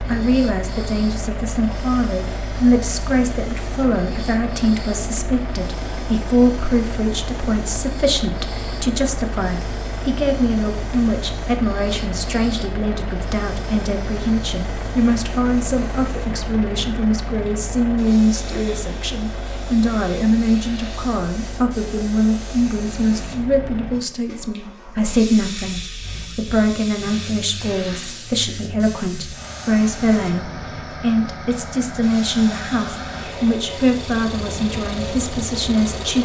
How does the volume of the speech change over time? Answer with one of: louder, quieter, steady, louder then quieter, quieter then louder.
steady.